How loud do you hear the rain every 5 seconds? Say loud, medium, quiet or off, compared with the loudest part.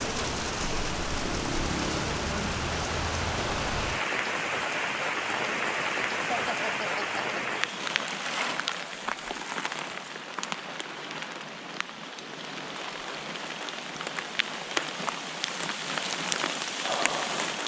loud, loud, medium, loud.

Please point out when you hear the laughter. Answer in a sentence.
You can hear the laughter from 6.2 to 7.7 s.